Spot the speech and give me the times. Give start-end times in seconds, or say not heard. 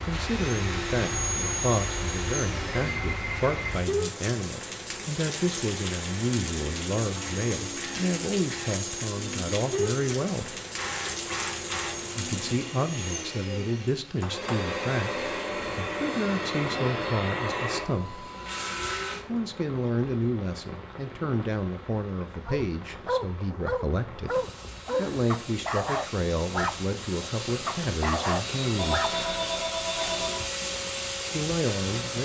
0.0-10.6, 12.2-18.2, 19.2-29.1, 31.3-32.2.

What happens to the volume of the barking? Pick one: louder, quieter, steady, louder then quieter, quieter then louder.
steady.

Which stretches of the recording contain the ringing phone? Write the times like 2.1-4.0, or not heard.
3.0-3.6, 14.2-15.4, 28.8-30.4.